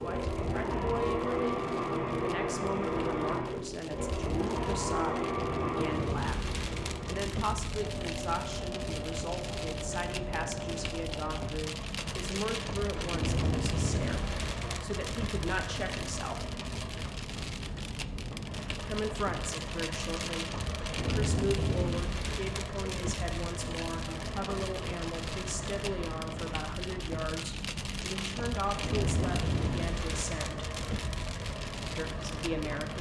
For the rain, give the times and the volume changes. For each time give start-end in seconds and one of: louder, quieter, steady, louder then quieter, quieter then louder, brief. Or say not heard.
0.0-32.9 louder.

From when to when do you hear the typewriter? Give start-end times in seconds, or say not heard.
not heard.